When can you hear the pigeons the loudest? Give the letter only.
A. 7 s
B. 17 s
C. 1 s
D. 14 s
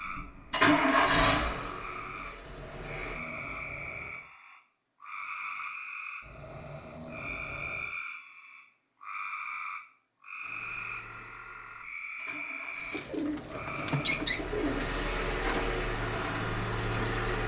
D.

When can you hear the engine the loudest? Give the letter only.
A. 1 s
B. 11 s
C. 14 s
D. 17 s
A.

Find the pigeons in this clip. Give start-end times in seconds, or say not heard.
12.9-15.7.